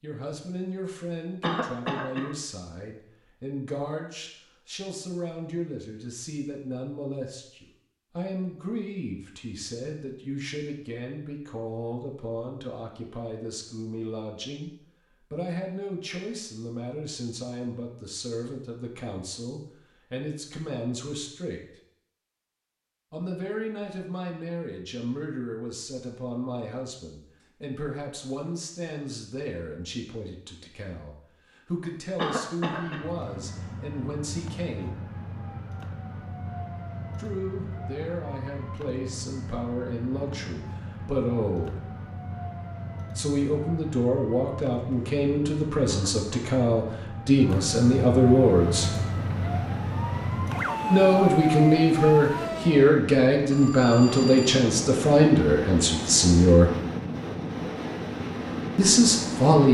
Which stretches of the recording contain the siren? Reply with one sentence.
You can hear the siren from 32.8 to 53.0 s.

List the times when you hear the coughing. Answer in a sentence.
You can hear the coughing from 1.4 to 2.3 s, from 32.1 to 33.0 s and from 45.9 to 46.5 s.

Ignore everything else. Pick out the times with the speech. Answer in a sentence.
You can hear the speech from 0.0 to 21.6 s, from 23.1 to 35.0 s, from 37.1 to 41.9 s, from 43.1 to 49.0 s, from 50.9 to 56.7 s and from 58.8 to 59.6 s.